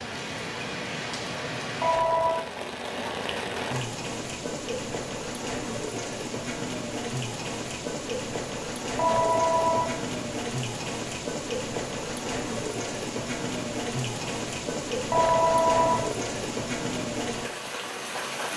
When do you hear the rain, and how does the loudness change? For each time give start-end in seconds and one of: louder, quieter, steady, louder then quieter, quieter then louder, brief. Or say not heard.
0.0-18.5 steady.